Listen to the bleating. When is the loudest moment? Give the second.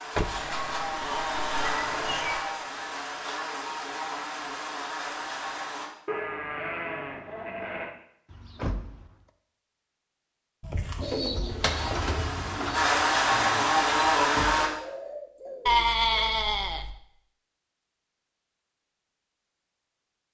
16 s.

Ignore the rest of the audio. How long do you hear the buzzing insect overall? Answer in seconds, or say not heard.
9 s.